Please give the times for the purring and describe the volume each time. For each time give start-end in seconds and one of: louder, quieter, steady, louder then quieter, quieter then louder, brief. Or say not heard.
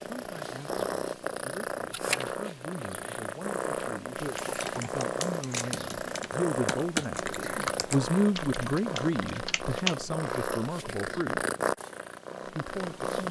0.0-13.2 steady.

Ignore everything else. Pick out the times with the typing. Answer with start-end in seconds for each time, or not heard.
4.2-10.2.